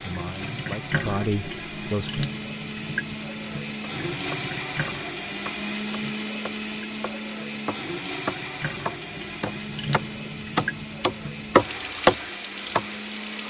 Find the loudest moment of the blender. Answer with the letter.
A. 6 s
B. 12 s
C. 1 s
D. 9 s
A.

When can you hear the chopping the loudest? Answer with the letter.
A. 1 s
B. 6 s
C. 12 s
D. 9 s
C.